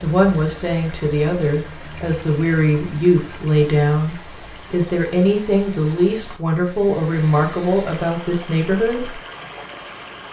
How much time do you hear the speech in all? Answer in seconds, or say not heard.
9 s.